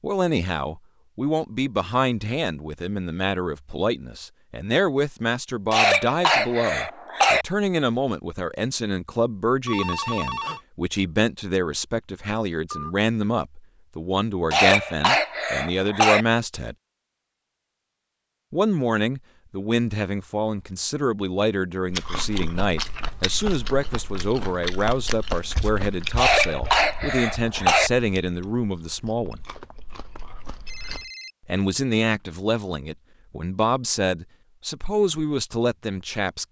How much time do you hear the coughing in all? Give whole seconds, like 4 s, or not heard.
5 s.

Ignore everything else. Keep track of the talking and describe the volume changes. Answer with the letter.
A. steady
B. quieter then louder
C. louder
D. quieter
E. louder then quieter
A.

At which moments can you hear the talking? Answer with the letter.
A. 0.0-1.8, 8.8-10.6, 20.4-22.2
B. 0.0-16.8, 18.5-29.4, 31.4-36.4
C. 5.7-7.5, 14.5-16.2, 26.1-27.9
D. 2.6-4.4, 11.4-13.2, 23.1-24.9
B.